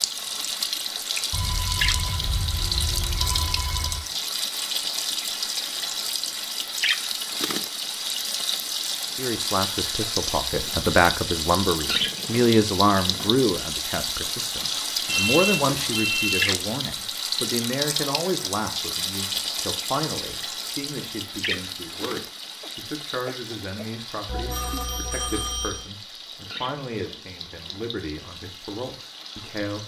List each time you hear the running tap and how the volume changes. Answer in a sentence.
You can hear the running tap from 0.0 to 29.8 s, getting quieter.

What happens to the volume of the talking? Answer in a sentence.
The volume of the talking goes down.